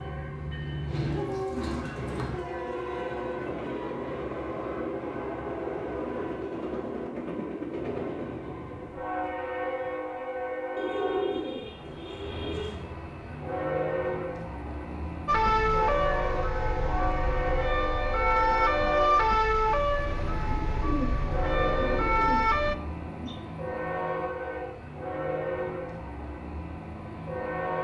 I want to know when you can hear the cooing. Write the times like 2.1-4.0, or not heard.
0.8-2.5, 10.8-12.8, 20.4-23.4.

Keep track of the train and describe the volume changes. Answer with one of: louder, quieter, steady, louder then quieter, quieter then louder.
steady.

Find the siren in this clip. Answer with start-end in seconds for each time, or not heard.
15.2-22.8.